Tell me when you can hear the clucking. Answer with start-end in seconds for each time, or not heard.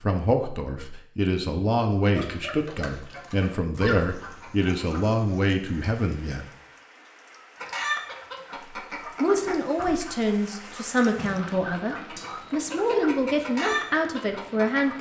2.1-5.0, 7.5-14.9.